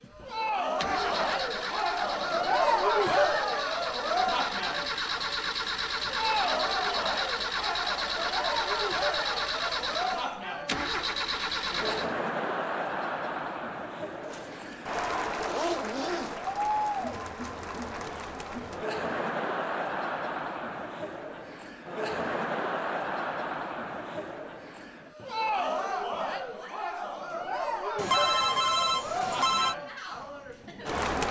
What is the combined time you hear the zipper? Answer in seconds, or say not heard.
2 s.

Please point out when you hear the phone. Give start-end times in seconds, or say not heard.
27.9-29.8.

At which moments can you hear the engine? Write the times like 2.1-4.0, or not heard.
0.0-12.2.